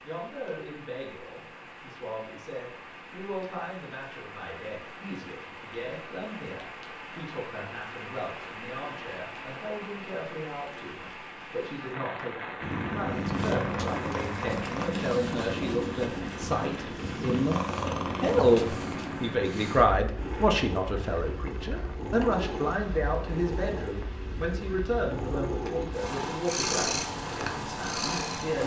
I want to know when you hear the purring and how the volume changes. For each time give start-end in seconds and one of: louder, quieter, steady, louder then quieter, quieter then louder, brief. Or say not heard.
12.6-28.6 quieter then louder.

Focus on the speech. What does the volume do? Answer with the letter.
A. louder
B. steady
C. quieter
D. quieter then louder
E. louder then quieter
E.